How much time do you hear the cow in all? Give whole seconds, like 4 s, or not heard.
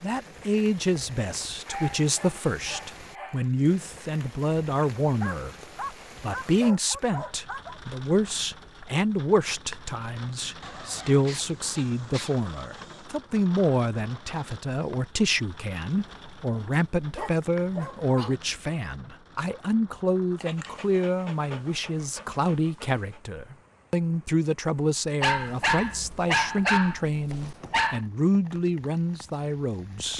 not heard.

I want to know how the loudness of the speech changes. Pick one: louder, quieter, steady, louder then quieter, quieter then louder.
steady.